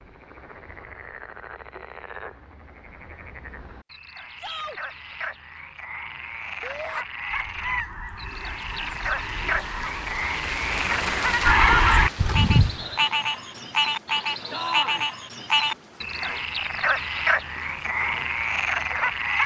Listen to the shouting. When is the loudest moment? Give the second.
15 s.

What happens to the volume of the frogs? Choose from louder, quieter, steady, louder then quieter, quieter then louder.
louder.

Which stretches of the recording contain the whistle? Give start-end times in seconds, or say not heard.
not heard.